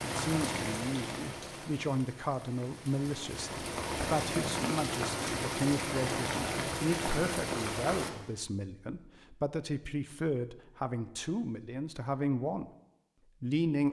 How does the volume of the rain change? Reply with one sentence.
The volume of the rain goes down, then up.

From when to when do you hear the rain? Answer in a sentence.
The rain can be heard from 0.0 to 8.1 s.